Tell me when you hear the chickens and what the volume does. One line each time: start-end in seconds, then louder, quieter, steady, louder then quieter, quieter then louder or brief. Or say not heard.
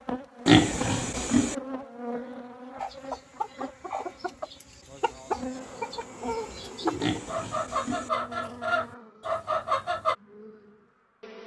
2.8-10.2 louder.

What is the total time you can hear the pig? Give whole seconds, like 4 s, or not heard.
2 s.